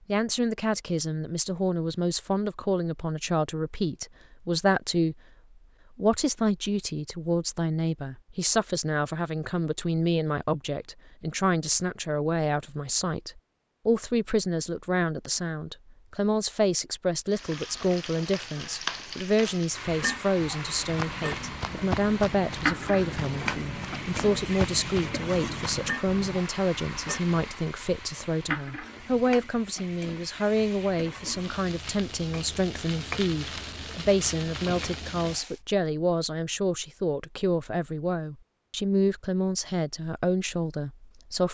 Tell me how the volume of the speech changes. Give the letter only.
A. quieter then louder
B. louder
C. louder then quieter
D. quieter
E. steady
E.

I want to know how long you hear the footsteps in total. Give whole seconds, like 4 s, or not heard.
6 s.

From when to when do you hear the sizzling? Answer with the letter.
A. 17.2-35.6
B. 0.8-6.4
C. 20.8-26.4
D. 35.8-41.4
A.